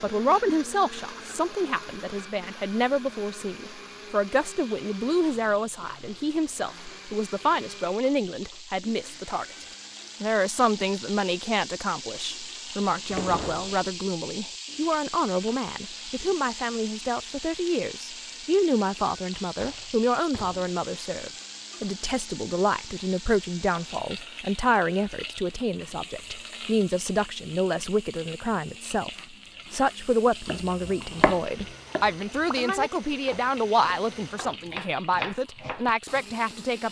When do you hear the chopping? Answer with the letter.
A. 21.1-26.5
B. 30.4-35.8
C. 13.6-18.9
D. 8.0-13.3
B.